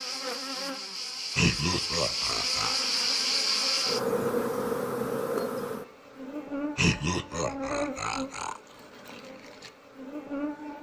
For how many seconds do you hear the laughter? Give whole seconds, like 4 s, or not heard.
3 s.